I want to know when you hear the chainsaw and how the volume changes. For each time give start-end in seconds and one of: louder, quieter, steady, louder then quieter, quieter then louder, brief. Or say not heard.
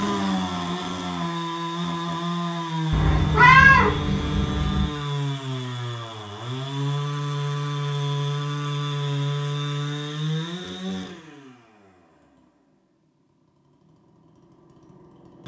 0.0-15.4 quieter.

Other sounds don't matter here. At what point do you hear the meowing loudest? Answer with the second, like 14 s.
4 s.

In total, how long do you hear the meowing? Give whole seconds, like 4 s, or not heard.
2 s.